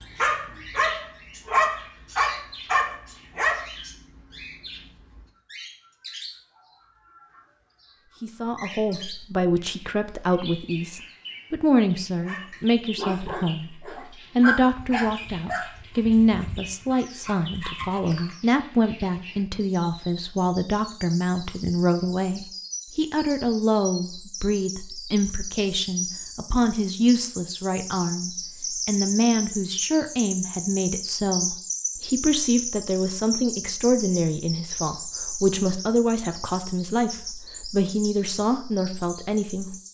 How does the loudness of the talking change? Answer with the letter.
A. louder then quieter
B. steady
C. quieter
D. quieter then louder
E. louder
B.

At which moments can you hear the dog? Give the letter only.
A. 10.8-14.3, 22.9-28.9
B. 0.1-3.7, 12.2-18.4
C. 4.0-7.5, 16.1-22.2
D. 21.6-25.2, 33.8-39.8
B.